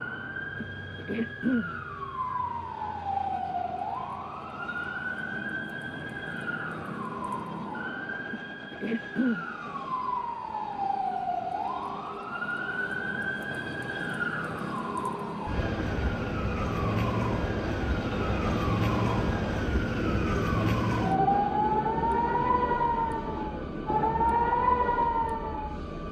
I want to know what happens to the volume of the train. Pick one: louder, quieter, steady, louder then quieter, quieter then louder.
louder.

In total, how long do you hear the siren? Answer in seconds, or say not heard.
26 s.